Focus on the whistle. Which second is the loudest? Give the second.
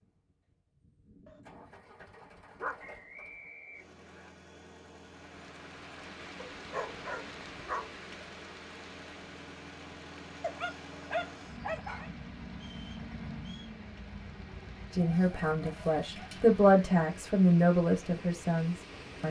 3 s.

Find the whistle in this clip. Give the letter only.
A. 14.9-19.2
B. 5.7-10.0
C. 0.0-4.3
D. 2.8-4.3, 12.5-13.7
D.